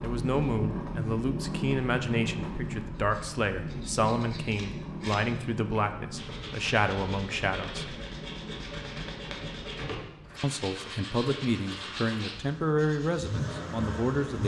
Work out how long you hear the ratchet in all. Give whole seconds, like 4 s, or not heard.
not heard.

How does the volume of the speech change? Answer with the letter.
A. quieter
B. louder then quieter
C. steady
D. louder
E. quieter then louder
C.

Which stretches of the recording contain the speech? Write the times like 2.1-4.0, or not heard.
0.0-8.0, 10.4-14.4.